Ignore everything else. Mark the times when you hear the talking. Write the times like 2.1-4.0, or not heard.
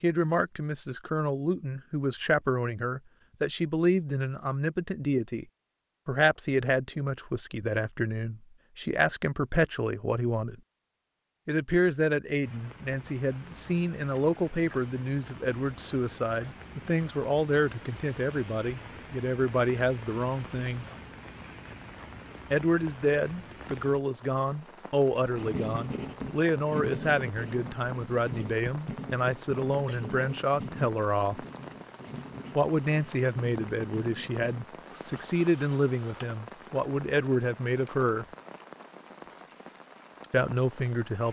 0.0-5.5, 6.0-10.6, 11.4-20.9, 22.5-31.4, 32.5-38.2, 40.3-41.2.